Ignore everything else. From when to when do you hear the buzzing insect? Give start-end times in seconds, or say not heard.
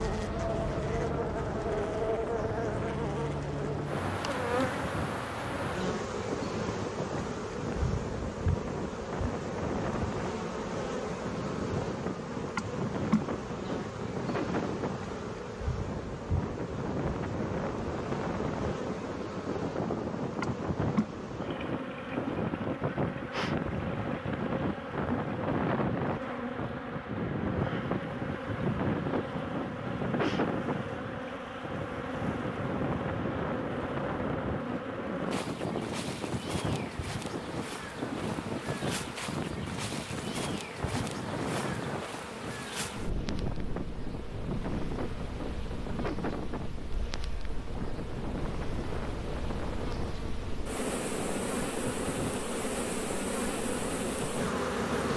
0.0-55.1.